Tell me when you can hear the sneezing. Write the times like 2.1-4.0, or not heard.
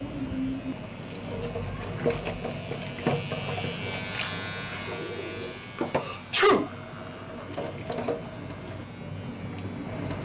6.0-6.7.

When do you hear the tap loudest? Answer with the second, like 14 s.
3 s.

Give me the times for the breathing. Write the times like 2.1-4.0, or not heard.
not heard.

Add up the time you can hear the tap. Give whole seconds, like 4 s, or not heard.
10 s.